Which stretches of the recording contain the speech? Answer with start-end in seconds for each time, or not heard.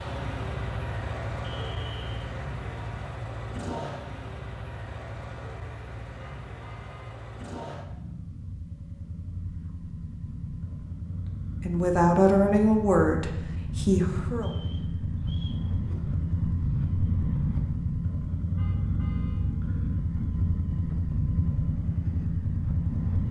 11.6-14.5.